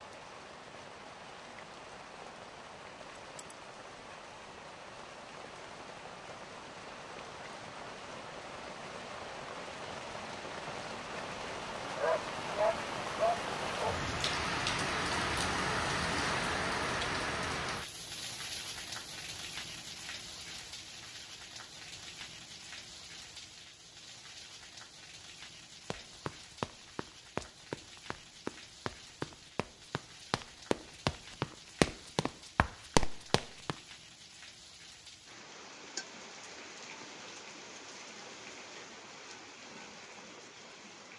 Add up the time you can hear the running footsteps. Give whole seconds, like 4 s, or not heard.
8 s.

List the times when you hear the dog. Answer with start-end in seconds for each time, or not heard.
11.9-13.9.